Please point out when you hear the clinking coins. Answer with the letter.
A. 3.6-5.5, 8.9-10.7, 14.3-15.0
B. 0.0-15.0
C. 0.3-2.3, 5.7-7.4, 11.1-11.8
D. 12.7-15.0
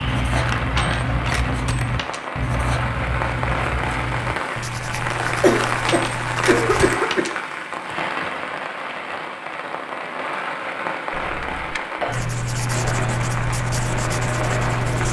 C.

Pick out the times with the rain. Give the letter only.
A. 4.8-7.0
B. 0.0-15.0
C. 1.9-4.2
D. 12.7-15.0
B.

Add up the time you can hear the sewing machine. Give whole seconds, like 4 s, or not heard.
2 s.